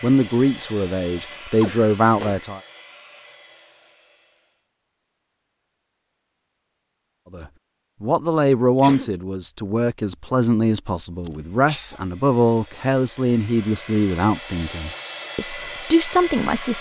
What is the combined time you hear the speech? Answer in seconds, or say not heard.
12 s.